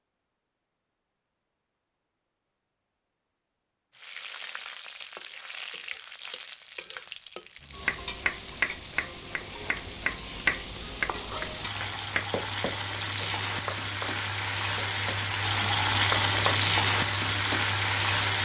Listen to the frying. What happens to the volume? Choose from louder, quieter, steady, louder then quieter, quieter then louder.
louder.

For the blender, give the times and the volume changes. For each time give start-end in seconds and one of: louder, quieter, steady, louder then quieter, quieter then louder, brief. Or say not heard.
not heard.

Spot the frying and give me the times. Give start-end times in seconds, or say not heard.
3.9-18.3.